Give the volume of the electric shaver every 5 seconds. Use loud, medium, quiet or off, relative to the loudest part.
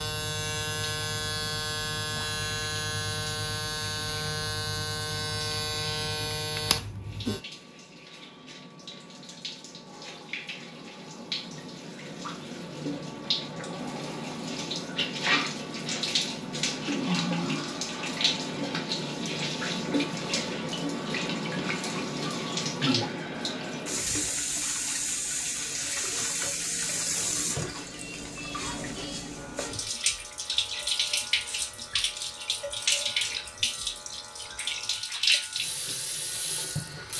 loud, loud, off, off, off, quiet, quiet, quiet.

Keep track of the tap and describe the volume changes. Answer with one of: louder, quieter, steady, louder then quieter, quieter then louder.
louder.